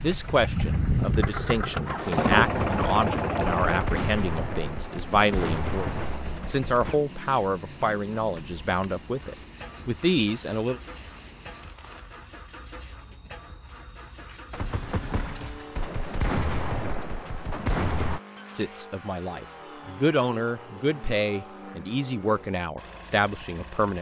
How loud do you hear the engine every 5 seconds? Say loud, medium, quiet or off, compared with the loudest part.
loud, quiet, quiet, quiet, quiet.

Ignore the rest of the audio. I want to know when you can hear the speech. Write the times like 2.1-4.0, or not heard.
0.0-10.8, 18.6-23.9.